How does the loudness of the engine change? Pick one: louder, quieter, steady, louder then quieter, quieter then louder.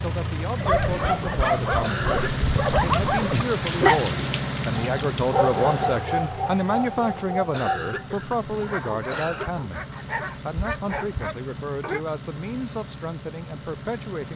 quieter.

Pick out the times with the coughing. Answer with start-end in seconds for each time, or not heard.
1.8-2.5, 7.5-9.5.